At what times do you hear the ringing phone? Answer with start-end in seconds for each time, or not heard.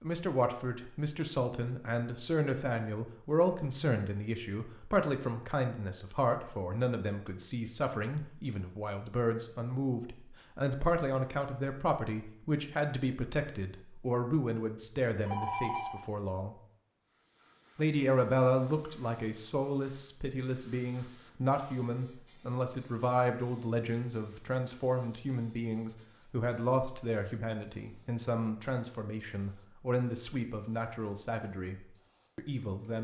14.8-16.1.